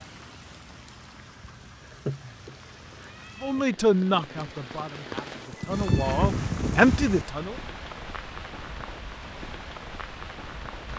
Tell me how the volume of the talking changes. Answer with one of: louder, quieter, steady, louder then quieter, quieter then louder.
quieter then louder.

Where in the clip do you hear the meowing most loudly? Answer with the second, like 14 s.
6 s.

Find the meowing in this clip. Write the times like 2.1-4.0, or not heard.
1.8-3.6, 5.7-7.2.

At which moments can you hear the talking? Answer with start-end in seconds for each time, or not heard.
3.4-7.5.